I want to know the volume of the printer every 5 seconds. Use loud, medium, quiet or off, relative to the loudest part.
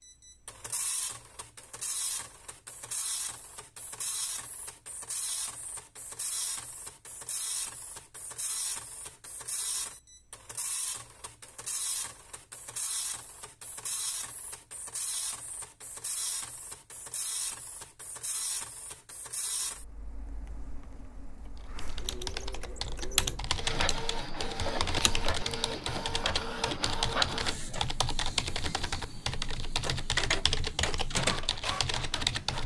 medium, medium, medium, medium, medium, loud, loud.